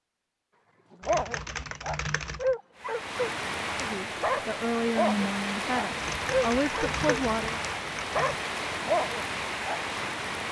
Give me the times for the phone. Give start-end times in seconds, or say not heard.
not heard.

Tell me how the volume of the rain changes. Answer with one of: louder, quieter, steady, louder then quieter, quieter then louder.
steady.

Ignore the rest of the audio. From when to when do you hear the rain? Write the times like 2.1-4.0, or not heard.
2.8-10.4.